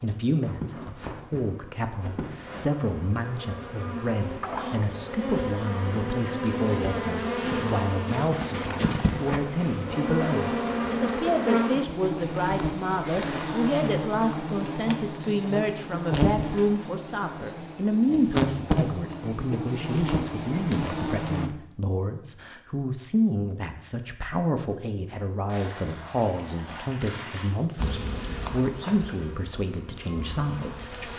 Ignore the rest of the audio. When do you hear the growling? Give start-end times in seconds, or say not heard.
4.4-5.0.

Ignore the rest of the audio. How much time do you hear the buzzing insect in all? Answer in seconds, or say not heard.
25 s.